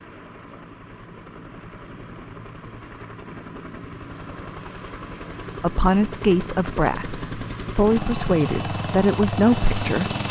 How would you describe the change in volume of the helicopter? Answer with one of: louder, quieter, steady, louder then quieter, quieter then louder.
louder.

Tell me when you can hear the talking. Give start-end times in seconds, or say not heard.
5.6-10.2.